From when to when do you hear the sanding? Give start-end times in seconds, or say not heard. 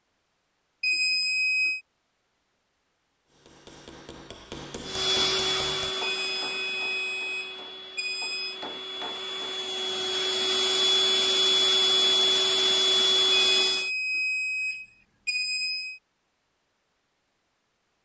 not heard.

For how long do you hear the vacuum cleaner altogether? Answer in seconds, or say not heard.
9 s.